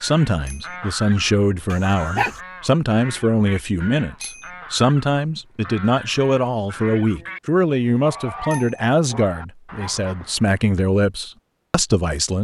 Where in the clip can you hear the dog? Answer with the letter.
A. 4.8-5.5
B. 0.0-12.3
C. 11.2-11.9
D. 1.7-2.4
D.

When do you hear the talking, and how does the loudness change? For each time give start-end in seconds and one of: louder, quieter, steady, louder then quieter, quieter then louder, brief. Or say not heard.
0.0-12.3 steady.